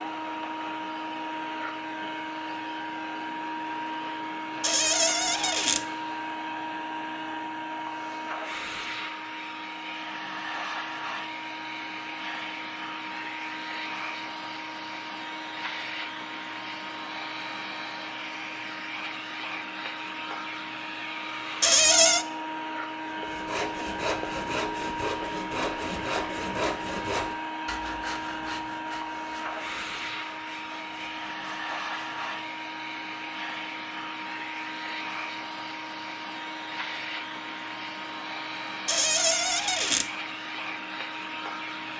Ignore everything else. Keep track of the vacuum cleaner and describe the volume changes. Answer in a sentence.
The volume of the vacuum cleaner stays about the same.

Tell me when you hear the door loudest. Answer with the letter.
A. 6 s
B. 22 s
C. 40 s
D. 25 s
B.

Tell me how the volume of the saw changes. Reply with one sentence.
The volume of the saw goes down.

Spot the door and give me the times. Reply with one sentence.
The door can be heard from 4.6 to 5.8 s, from 21.6 to 22.2 s and from 38.9 to 40.0 s.